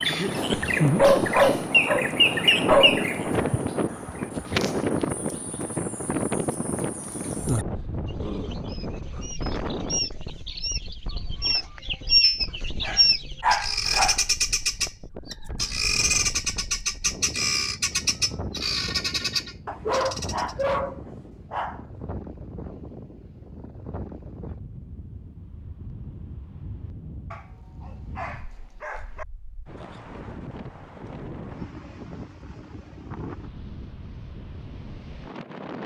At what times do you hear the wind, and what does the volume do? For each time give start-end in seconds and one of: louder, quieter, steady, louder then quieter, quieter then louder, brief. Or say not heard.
0.0-35.8 quieter.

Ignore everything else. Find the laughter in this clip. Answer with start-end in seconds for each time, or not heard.
0.0-0.6.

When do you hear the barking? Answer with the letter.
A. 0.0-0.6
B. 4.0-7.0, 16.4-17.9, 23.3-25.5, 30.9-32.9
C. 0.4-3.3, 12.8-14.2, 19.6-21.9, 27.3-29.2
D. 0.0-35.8
C.